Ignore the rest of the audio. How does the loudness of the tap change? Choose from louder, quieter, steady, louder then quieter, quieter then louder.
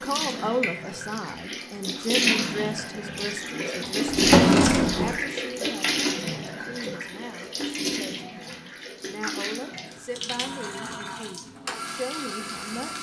quieter.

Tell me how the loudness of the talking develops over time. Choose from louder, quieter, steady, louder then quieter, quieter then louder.
quieter.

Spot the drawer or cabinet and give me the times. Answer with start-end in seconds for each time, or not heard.
4.0-5.2.